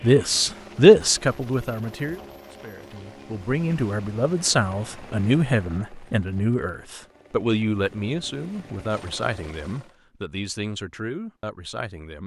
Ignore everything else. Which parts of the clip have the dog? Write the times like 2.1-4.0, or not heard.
not heard.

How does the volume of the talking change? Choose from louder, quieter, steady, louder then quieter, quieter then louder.
quieter.